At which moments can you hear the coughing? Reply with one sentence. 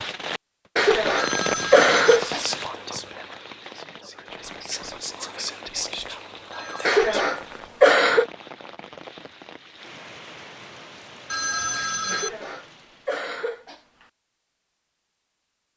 The coughing can be heard from 0.8 to 2.4 s, from 6.8 to 8.2 s and from 12.1 to 14.1 s.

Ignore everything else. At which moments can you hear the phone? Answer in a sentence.
The phone can be heard from 1.1 to 2.2 s, from 6.5 to 7.0 s and from 11.3 to 12.3 s.